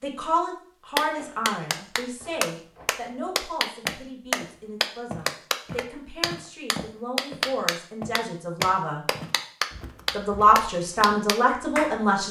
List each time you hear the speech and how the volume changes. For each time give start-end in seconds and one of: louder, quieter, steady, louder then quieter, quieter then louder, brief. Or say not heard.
0.0-9.0 quieter then louder
10.1-12.2 brief.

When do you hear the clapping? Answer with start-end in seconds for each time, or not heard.
0.9-12.0.